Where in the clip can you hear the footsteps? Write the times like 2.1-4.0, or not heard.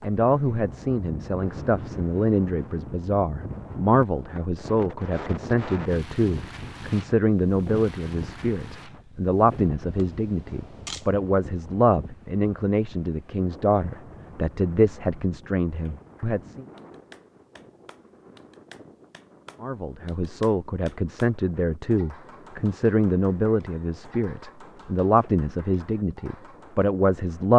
not heard.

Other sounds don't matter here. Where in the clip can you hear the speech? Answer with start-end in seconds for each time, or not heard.
0.0-16.6, 19.6-27.5.